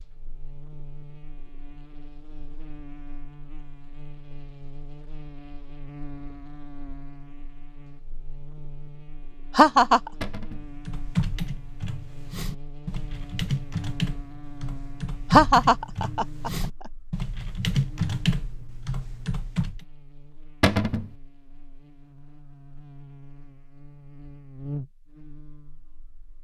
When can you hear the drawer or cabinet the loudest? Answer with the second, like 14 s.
21 s.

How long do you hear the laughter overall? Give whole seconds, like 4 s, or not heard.
2 s.